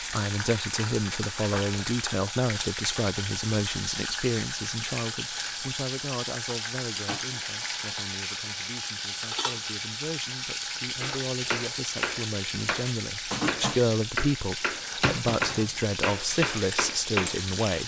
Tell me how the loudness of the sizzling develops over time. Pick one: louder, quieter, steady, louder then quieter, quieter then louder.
steady.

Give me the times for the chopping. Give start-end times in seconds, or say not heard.
11.0-17.6.